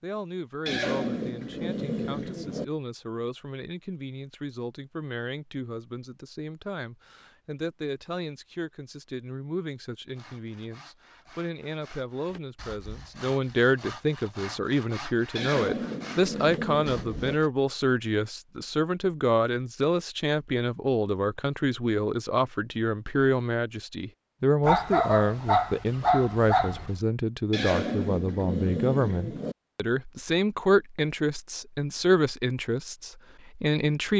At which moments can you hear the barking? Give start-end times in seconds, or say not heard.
24.6-26.9.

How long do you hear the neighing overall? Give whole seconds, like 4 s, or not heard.
6 s.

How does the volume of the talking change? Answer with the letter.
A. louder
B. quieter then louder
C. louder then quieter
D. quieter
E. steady
A.